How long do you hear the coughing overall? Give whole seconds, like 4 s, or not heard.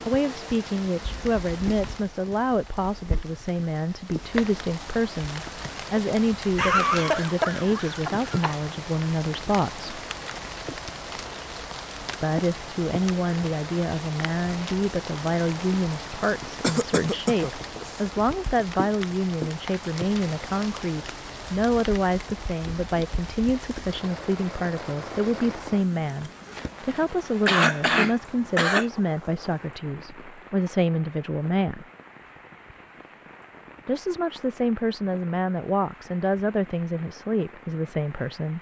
5 s.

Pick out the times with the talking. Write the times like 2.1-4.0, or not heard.
0.1-9.9, 12.2-31.9, 33.9-38.5.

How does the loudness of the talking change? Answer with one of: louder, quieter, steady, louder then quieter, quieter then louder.
steady.